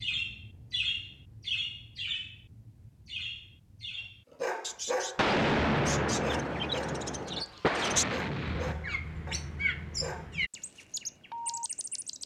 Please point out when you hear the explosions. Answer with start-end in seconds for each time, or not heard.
5.2-8.8.